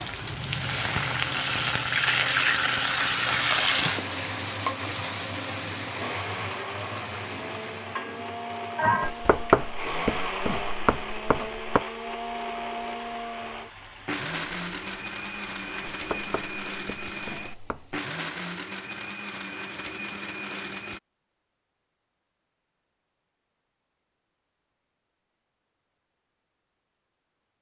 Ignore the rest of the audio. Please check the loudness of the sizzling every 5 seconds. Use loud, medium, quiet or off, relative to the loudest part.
loud, medium, quiet, off, off, off.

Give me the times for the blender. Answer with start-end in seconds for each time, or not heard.
0.0-21.0.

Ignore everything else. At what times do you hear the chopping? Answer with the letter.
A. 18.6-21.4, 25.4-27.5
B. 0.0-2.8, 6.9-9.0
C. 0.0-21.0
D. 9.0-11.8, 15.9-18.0
D.